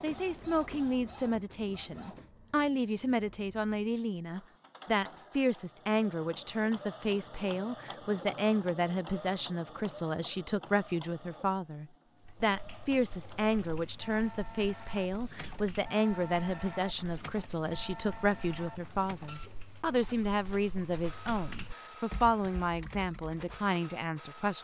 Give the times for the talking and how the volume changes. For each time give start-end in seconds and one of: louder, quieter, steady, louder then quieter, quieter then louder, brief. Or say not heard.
0.0-24.5 steady.